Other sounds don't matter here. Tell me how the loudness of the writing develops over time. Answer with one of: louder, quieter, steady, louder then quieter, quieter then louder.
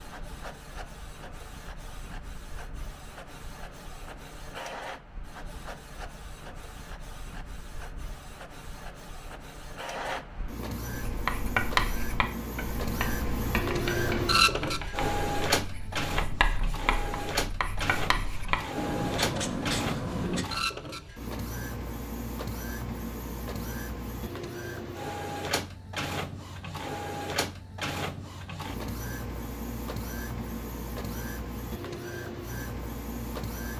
quieter then louder.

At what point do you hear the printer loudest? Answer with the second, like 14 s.
14 s.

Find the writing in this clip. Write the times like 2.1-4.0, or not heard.
11.1-20.4.